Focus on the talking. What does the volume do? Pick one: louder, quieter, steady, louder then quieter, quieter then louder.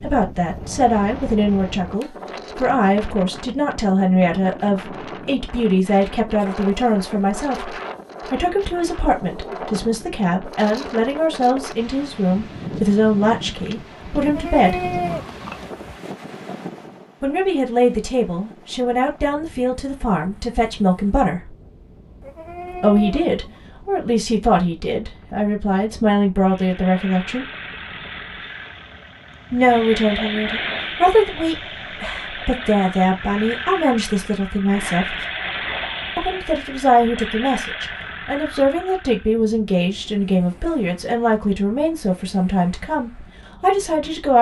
steady.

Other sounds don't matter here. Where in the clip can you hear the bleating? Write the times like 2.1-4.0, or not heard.
14.2-15.9, 22.2-23.6.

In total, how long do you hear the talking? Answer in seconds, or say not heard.
38 s.